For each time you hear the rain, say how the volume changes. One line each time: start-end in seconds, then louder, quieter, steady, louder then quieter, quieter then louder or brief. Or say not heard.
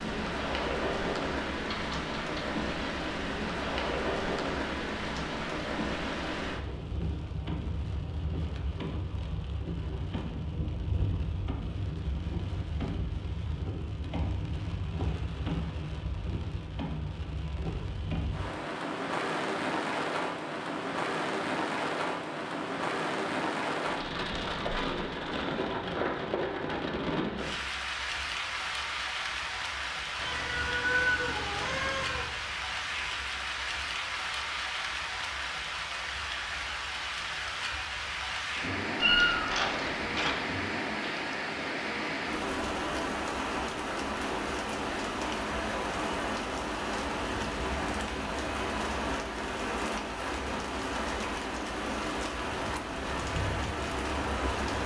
0.0-54.8 steady.